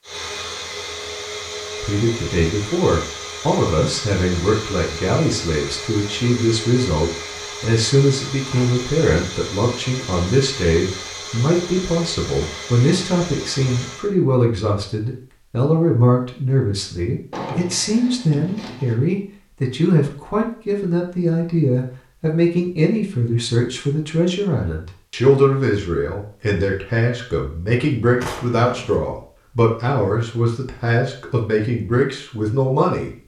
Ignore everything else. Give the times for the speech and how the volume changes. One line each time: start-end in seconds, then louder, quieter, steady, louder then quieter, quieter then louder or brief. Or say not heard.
1.8-33.1 steady.